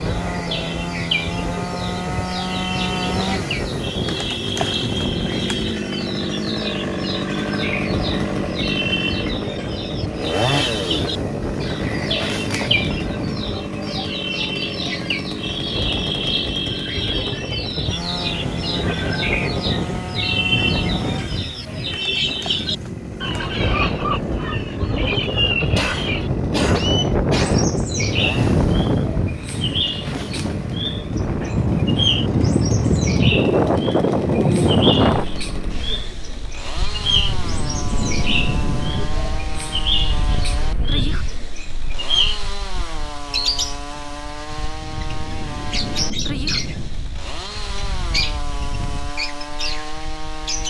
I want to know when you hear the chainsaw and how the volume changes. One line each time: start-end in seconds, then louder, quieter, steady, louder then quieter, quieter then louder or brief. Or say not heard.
0.0-50.6 quieter.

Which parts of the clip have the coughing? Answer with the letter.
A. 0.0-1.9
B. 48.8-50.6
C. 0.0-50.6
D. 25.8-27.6
D.